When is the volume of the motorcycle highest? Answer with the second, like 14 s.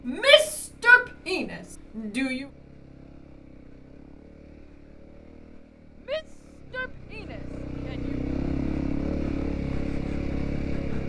9 s.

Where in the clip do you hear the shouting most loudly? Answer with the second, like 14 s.
1 s.